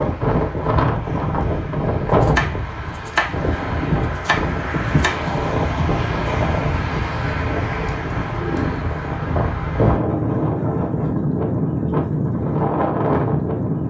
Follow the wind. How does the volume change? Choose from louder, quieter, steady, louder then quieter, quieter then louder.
steady.